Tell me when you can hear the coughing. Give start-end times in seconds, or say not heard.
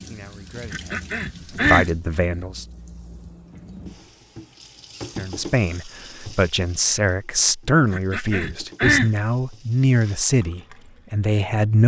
0.7-1.9, 7.9-9.1.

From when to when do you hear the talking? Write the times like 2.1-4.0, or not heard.
0.0-2.6, 5.2-11.8.